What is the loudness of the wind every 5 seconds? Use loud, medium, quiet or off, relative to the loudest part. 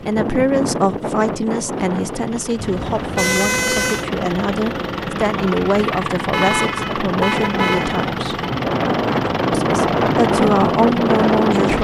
medium, medium, loud.